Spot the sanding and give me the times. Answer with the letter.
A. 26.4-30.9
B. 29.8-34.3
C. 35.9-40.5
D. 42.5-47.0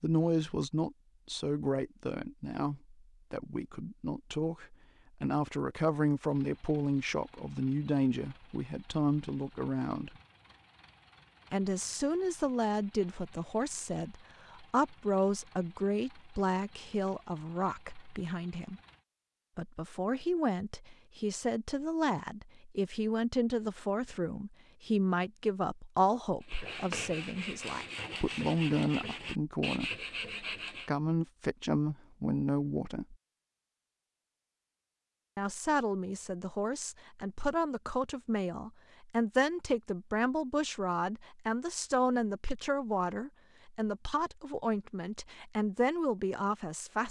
A.